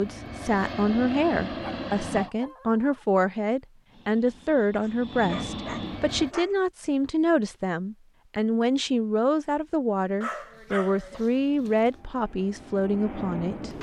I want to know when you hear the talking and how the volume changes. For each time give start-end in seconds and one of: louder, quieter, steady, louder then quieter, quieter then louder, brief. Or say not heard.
0.0-13.7 steady.